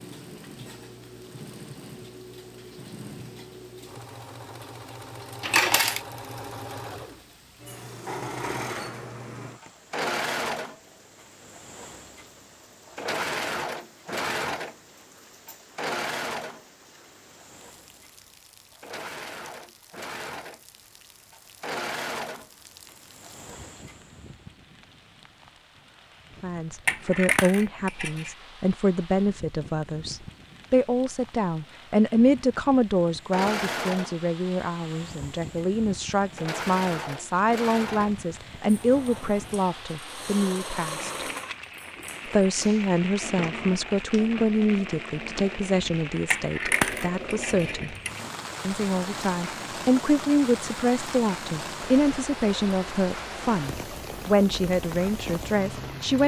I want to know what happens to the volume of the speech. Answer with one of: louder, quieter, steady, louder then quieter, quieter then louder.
steady.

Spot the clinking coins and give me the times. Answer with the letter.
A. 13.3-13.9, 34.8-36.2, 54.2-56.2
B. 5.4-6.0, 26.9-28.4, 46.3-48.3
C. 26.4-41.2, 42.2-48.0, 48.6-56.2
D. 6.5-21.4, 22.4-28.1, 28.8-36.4
B.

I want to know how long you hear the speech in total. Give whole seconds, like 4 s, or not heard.
28 s.